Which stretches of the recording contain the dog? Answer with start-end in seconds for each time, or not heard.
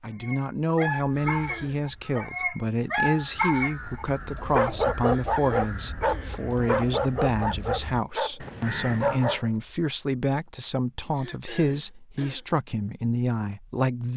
0.2-9.8.